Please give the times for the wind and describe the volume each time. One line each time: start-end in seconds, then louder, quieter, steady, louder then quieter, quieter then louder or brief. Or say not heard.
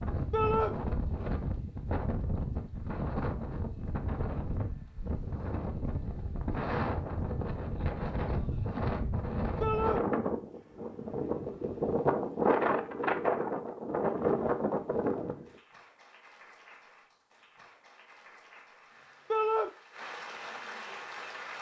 0.0-15.5 louder.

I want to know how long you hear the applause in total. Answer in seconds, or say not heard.
6 s.